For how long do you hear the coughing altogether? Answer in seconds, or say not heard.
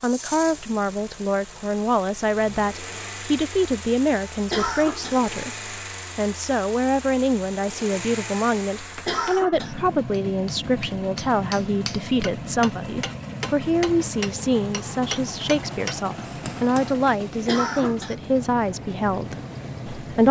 2 s.